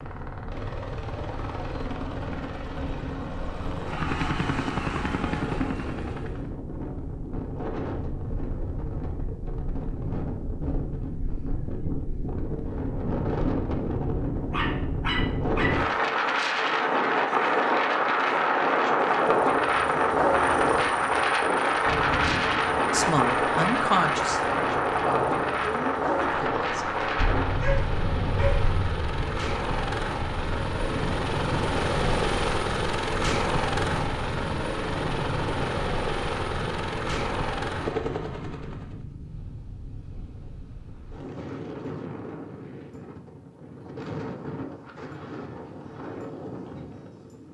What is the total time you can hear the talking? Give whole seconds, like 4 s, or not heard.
4 s.